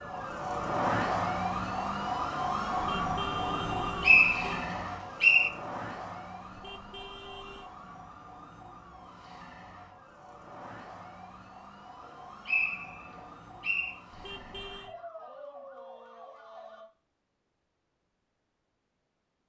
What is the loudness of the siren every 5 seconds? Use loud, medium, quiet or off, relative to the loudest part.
loud, quiet, quiet, quiet.